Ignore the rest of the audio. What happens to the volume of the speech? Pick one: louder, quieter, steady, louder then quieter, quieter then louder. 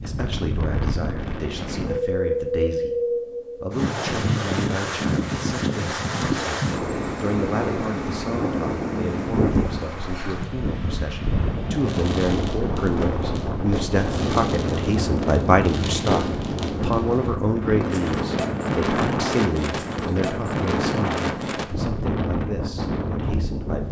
louder then quieter.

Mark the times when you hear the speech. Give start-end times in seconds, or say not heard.
0.0-23.8.